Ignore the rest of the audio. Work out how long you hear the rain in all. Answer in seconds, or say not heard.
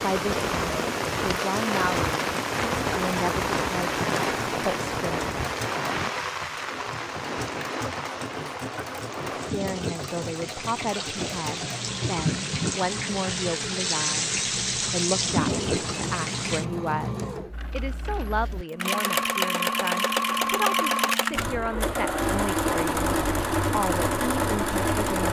17 s.